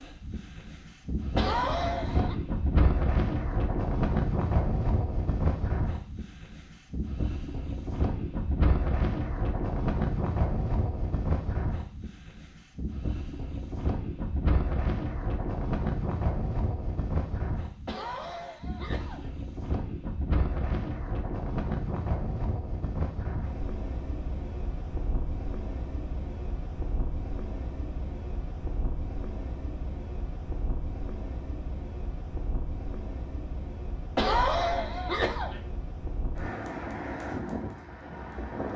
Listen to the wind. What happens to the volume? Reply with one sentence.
The volume of the wind goes down.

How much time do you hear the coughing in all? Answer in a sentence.
The coughing can be heard for 4 seconds in total.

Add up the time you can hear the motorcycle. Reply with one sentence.
The motorcycle can't be heard in this clip.